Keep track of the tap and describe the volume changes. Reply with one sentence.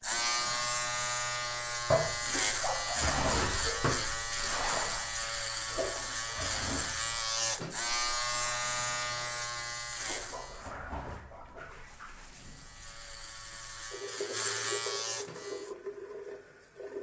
The loudness of the tap goes down, then up.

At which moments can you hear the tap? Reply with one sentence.
The tap can be heard from 0.0 to 16.9 s.